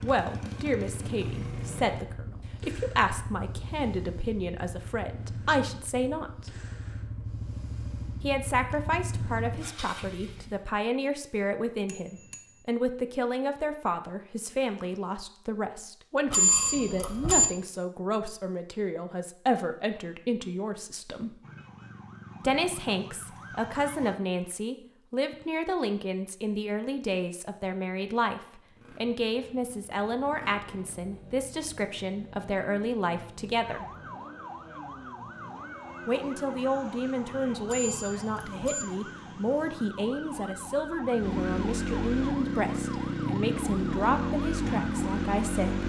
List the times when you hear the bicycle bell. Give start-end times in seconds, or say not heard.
11.8-12.6, 16.3-17.4, 37.6-38.9.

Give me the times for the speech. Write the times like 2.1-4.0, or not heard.
0.0-6.5, 8.2-21.4, 22.4-33.9, 36.0-45.8.